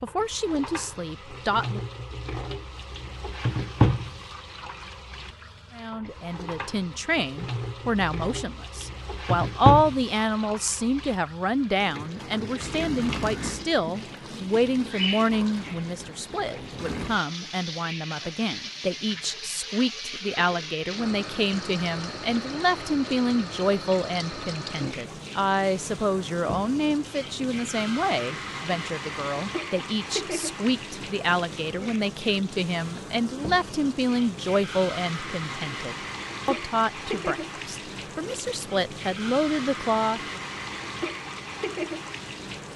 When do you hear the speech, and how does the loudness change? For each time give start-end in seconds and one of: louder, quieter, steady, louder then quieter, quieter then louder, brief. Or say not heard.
0.0-1.8 brief
5.8-40.4 steady.